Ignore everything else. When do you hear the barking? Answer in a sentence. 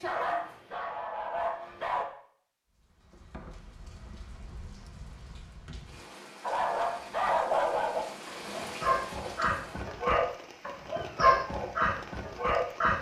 You can hear the barking from 0.0 to 2.0 s and from 6.4 to 12.9 s.